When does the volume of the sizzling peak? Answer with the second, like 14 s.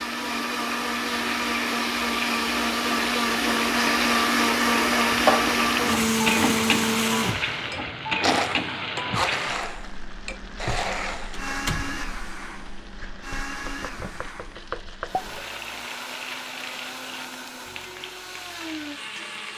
6 s.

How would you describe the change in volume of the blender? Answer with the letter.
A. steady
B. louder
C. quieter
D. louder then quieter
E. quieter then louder
C.